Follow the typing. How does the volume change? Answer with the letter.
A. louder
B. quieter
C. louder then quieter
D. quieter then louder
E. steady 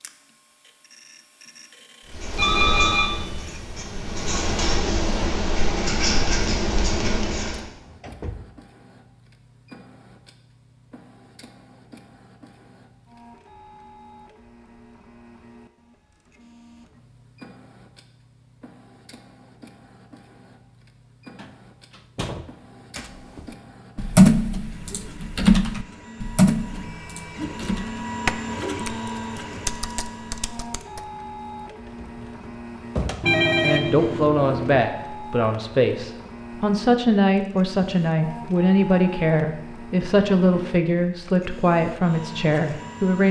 B.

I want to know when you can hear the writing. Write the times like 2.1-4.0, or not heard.
2.0-7.7.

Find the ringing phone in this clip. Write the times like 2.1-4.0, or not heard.
2.4-3.5, 33.2-34.9.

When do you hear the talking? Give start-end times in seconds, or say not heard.
33.6-43.2.